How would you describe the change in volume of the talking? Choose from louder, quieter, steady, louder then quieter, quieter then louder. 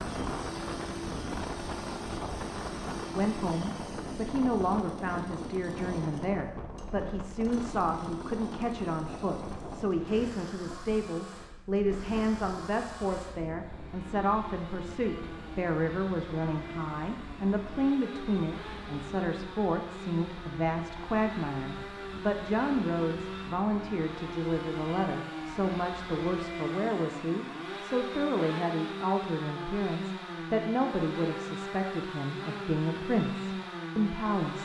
steady.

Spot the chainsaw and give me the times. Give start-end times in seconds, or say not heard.
0.0-34.5.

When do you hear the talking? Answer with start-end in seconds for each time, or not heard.
3.1-34.5.